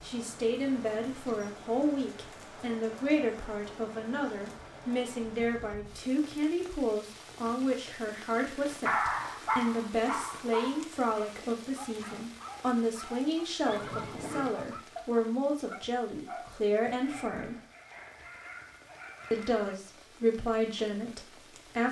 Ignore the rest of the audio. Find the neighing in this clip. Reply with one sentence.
You can hear the neighing from 13.7 to 14.6 s.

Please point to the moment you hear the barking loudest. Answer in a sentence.
The loudest moment of the barking is at 9 seconds.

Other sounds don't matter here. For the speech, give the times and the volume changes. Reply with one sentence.
You can hear the speech from 0.0 to 17.6 s, at a steady volume; and briefly from 19.3 to 21.8 s.